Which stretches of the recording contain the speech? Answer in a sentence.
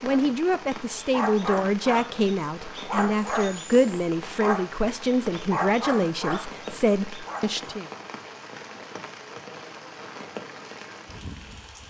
You can hear the speech from 0.0 to 7.9 s.